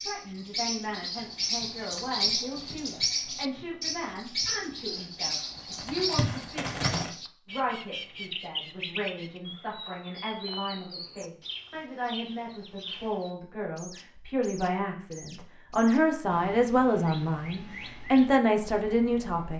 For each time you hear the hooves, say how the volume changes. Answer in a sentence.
The hooves can be heard from 1.1 to 7.1 s, getting quieter then louder.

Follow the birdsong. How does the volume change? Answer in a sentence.
The volume of the birdsong goes down.